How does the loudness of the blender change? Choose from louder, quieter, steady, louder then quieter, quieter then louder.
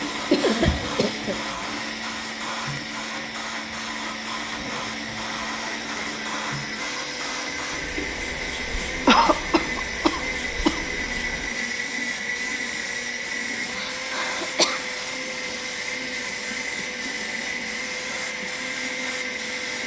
steady.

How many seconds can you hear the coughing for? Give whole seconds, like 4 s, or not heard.
4 s.